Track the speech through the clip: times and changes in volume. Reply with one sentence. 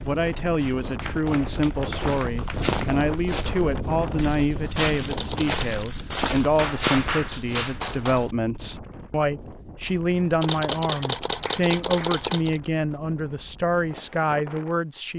You can hear the speech from 0.0 to 15.1 s, at a steady volume.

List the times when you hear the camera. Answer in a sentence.
You can hear the camera from 5.1 to 5.8 s and from 10.4 to 12.6 s.